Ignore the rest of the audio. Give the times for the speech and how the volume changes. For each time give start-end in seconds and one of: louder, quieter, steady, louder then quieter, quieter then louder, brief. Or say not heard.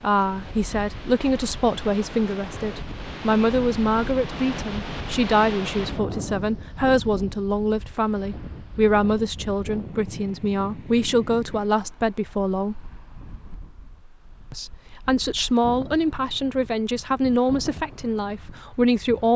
0.0-12.8 steady
14.5-19.3 steady.